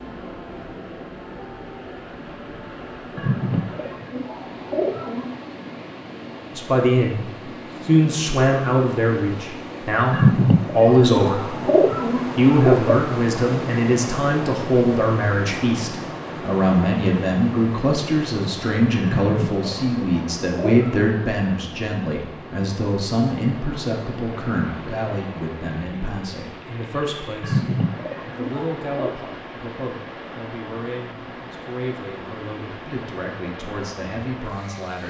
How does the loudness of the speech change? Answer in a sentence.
The loudness of the speech goes down.